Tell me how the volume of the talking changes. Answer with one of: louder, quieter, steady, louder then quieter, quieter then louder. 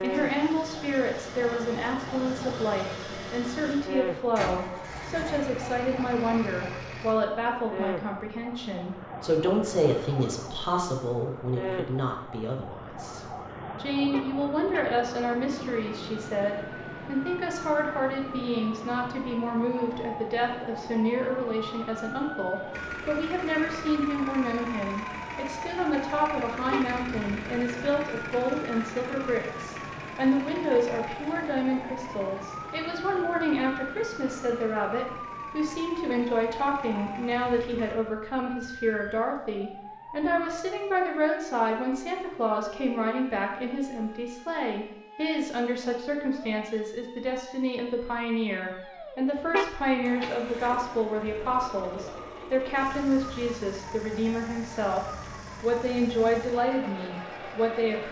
steady.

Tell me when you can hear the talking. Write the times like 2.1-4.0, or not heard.
0.0-58.0.